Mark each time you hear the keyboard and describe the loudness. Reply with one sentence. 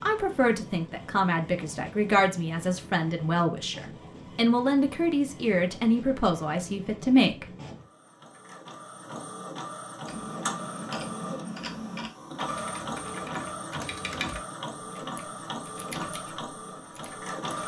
You can hear the keyboard from 10.1 to 17.6 s, getting quieter then louder.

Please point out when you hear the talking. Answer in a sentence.
You can hear the talking from 0.0 to 7.5 s.